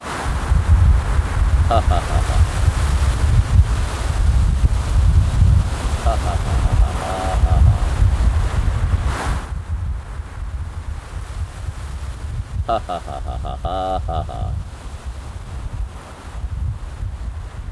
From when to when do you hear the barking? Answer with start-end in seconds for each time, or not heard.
not heard.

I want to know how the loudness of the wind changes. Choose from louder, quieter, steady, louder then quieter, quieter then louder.
quieter.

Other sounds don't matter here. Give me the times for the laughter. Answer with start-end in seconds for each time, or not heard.
1.7-2.4, 6.0-7.9, 12.7-14.6.